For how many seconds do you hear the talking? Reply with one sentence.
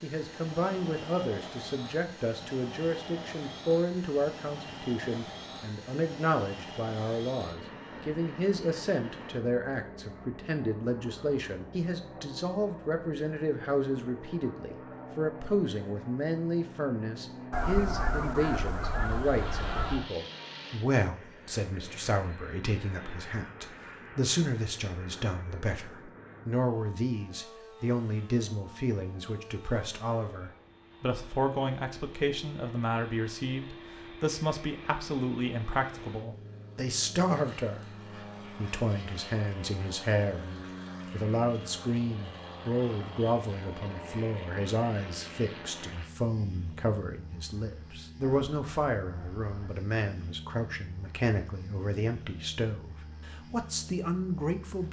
The talking can be heard for 54 seconds in total.